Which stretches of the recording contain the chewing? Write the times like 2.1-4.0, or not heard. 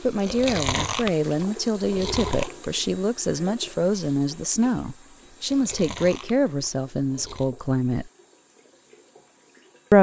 0.1-2.6, 5.3-7.5.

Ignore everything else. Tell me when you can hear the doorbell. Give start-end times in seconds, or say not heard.
not heard.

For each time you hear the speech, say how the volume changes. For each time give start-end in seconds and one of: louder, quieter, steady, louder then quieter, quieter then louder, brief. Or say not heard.
0.0-8.1 steady.